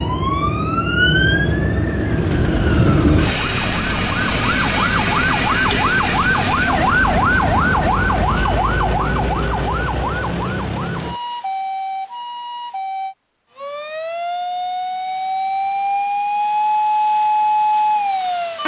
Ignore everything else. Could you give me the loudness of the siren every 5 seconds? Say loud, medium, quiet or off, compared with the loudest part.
loud, loud, medium, loud.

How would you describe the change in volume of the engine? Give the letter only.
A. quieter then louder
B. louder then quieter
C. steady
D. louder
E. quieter
C.